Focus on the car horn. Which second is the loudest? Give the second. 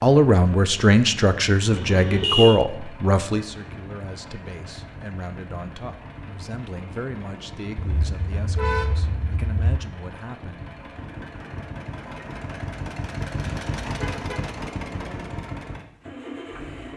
2 s.